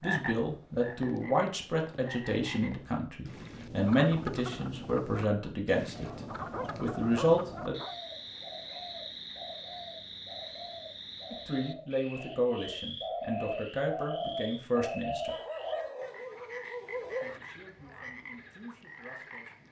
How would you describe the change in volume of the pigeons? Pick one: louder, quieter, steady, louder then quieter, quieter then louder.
louder.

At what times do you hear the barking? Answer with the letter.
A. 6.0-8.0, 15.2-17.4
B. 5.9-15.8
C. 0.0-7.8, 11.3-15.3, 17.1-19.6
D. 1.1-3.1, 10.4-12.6
A.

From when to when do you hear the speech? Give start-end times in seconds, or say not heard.
0.0-7.8, 11.3-15.3, 17.1-19.6.